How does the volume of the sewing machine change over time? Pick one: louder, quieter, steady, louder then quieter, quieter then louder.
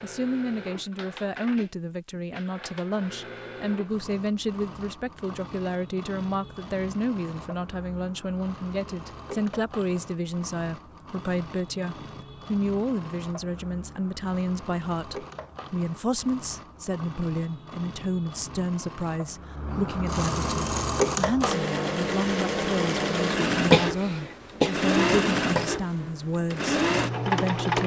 louder.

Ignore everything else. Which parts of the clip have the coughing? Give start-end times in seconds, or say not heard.
23.7-24.8.